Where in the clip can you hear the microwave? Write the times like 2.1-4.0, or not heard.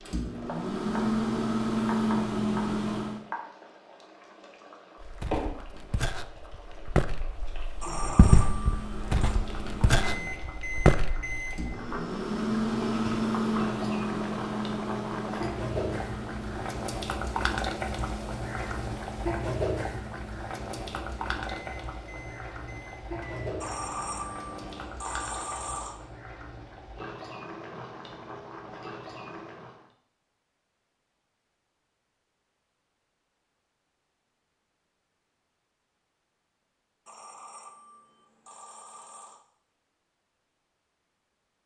0.1-3.2, 8.3-25.0.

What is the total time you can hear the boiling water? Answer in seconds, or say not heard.
30 s.